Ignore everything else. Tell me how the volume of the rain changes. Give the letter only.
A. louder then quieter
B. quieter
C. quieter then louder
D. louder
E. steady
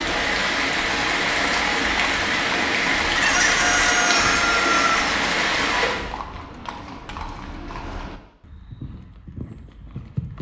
E.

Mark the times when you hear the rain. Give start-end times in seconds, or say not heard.
0.0-6.1.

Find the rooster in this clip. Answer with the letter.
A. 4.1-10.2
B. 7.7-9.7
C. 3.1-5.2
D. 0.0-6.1
C.